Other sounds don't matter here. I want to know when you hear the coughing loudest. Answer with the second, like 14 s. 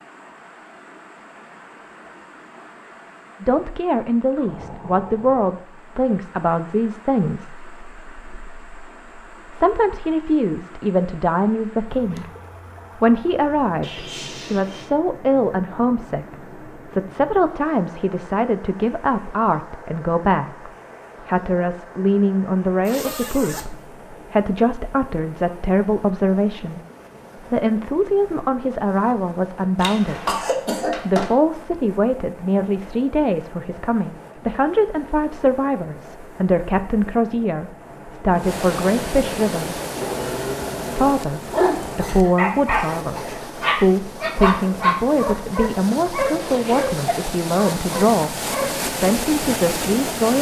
30 s.